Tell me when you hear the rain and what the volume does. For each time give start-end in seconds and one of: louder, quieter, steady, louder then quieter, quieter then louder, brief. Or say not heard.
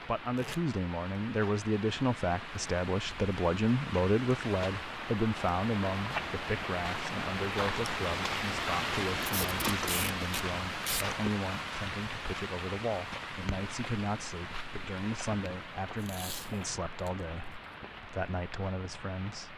0.0-19.5 louder then quieter.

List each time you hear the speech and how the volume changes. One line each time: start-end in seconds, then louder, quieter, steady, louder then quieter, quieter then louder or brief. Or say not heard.
0.1-19.5 quieter.